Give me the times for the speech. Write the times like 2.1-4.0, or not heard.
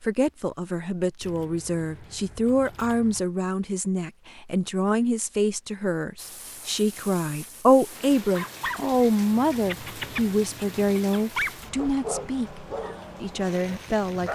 0.0-14.3.